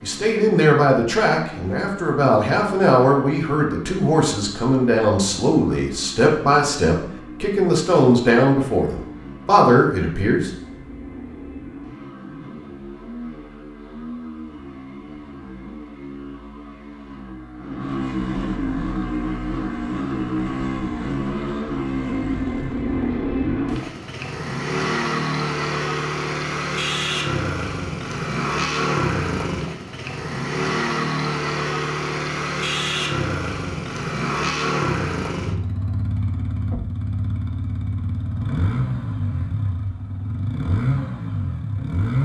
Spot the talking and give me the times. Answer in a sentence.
You can hear the talking from 0.0 to 10.5 s.